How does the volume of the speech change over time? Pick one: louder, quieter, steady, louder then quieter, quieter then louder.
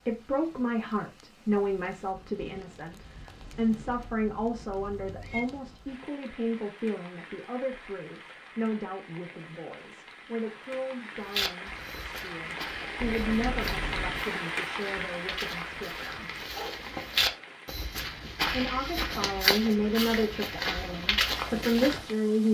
quieter then louder.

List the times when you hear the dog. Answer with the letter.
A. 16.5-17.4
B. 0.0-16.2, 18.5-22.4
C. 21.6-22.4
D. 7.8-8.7
A.